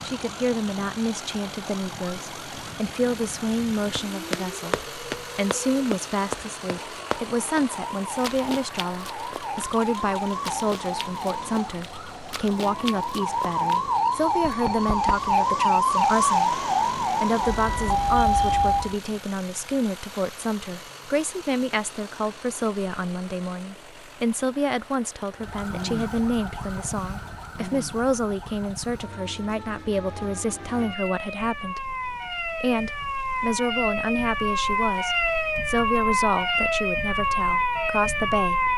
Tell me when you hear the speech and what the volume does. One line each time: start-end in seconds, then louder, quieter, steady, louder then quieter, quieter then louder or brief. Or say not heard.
0.0-38.7 steady.